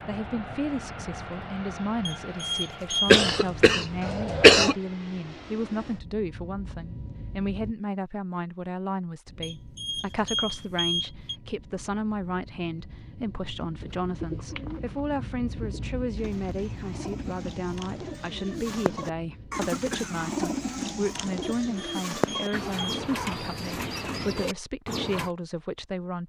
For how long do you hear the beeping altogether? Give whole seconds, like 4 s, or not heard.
5 s.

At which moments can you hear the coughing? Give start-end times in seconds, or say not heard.
3.0-4.8, 19.5-21.4.